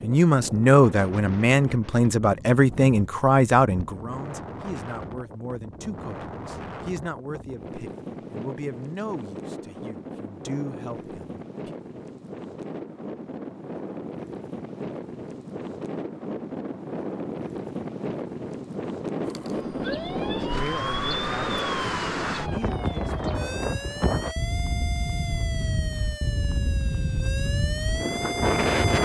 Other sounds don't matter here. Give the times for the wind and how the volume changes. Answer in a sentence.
The wind can be heard from 0.0 to 29.0 s, getting louder.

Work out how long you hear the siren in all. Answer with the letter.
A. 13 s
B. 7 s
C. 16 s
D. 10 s
D.